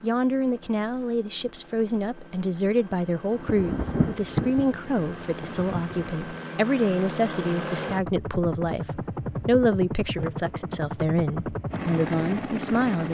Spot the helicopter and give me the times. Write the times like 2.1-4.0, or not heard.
0.0-13.1.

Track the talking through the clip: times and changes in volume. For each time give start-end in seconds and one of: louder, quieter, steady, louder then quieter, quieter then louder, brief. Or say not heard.
0.0-13.1 steady.